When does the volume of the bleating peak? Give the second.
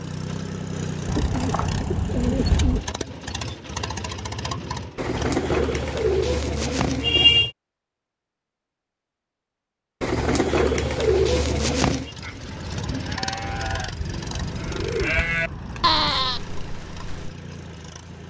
16 s.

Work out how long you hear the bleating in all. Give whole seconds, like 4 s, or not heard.
5 s.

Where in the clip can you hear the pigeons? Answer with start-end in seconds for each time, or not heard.
1.1-2.9, 5.0-7.5, 10.0-12.1, 14.2-16.2.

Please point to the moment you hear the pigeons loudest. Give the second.
7 s.